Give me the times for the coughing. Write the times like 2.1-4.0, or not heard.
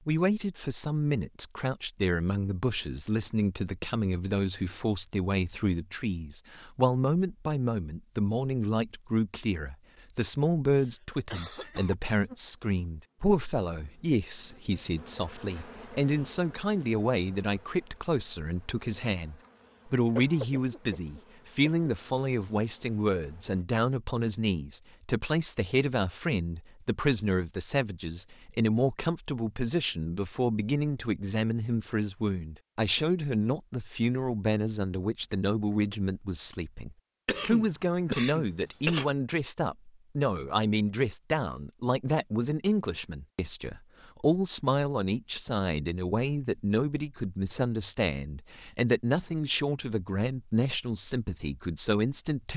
10.7-11.9, 20.1-21.9, 37.2-39.1.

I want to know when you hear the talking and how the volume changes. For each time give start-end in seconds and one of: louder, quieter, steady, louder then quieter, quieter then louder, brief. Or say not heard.
0.1-52.5 steady.